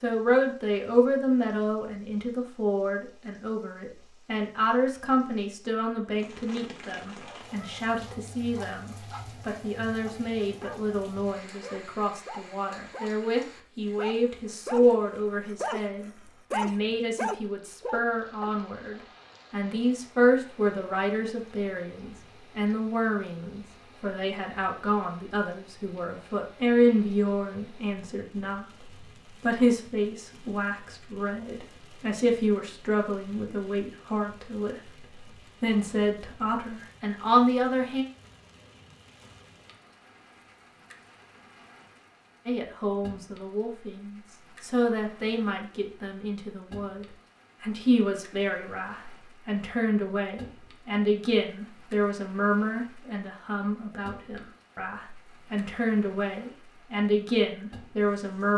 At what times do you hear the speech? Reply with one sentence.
The speech can be heard from 0.0 to 34.8 s, from 35.6 to 38.0 s and from 42.5 to 58.5 s.